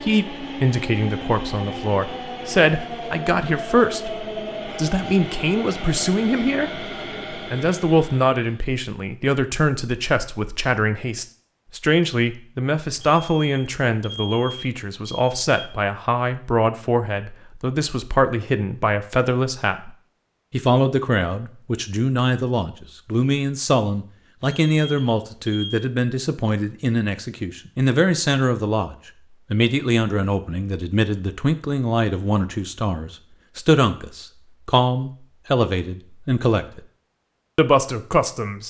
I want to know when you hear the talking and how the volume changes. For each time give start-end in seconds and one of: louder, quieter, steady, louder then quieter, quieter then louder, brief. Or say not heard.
0.0-36.8 steady
37.5-38.6 brief.